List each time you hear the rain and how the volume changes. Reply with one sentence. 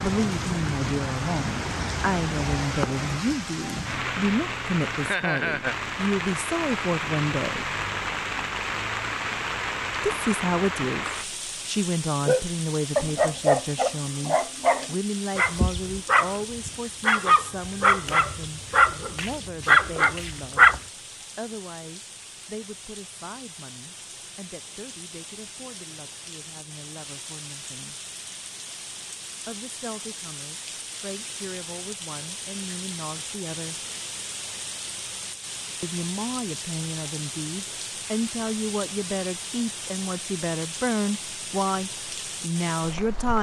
The rain can be heard from 0.0 to 43.3 s, getting quieter then louder.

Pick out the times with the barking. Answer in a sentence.
You can hear the barking from 12.2 to 20.8 s.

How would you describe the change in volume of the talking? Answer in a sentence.
The volume of the talking goes down, then up.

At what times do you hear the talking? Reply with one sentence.
You can hear the talking from 0.0 to 7.7 s, from 10.1 to 20.8 s, from 21.4 to 27.9 s, from 29.4 to 33.8 s and from 35.8 to 43.3 s.